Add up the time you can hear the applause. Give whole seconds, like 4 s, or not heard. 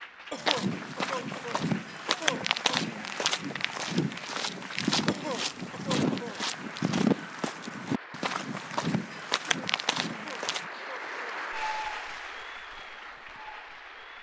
14 s.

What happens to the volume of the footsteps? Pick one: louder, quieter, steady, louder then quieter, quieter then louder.
steady.